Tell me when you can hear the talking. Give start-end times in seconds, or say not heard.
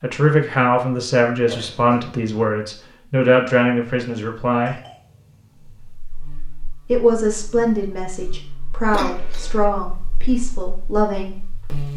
0.0-4.8, 6.8-11.3.